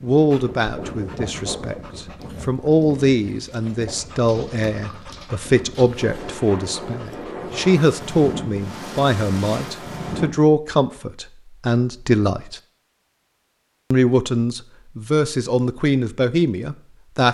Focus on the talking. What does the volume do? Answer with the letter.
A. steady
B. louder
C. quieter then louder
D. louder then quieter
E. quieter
A.